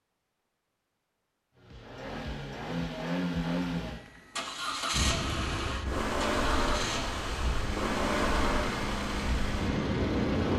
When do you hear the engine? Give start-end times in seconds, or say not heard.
1.6-10.5.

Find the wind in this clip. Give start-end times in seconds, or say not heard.
4.9-10.5.